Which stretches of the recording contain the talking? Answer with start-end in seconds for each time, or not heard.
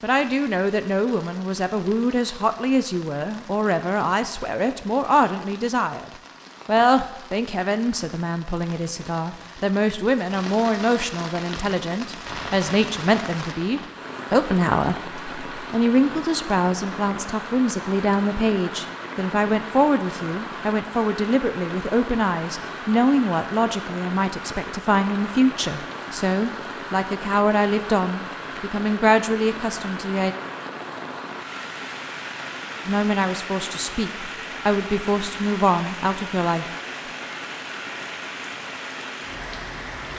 0.0-30.4, 32.9-36.6.